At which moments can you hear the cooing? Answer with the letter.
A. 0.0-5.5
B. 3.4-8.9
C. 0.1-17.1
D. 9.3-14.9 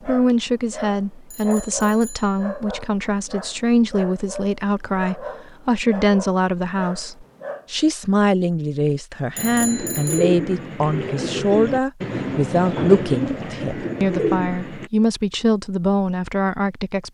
D.